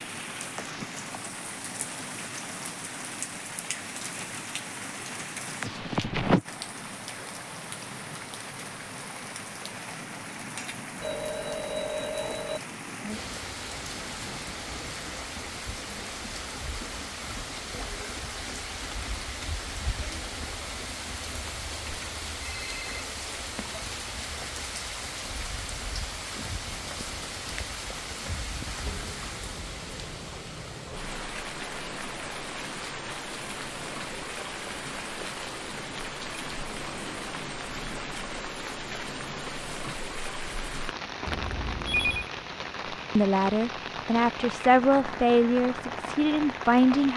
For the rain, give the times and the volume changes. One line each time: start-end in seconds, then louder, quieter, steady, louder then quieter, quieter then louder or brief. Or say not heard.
0.0-47.1 steady.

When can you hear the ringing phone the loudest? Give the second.
42 s.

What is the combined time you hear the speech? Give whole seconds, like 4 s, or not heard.
4 s.